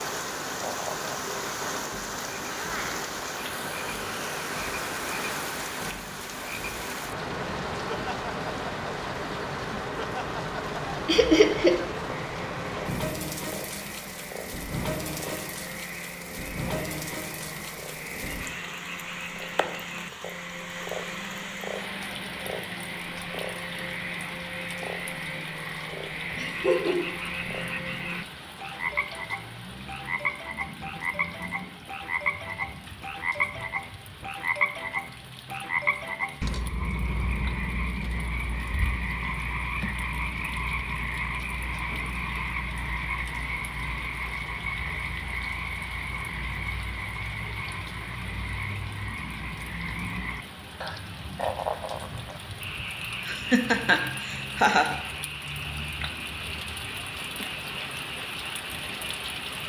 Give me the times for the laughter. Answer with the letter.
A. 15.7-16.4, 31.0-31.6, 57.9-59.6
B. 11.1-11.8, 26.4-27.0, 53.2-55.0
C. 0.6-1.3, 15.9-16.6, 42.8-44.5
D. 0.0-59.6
B.